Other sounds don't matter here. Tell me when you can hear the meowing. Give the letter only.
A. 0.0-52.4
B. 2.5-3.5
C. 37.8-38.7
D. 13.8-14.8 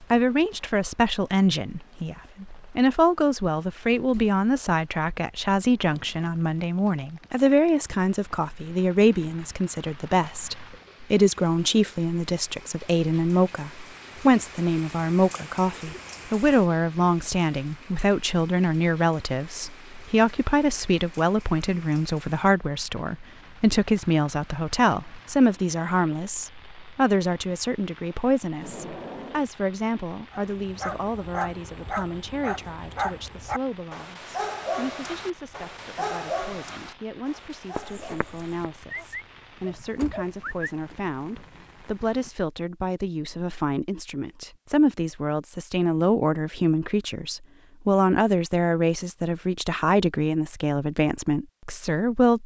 C.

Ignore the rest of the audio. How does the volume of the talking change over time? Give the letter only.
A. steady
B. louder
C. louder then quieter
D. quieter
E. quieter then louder
E.